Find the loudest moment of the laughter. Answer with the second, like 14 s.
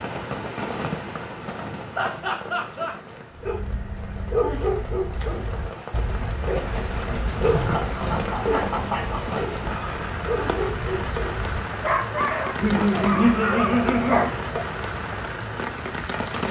13 s.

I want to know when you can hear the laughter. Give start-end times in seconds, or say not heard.
1.9-3.0, 7.5-9.3, 12.6-14.3.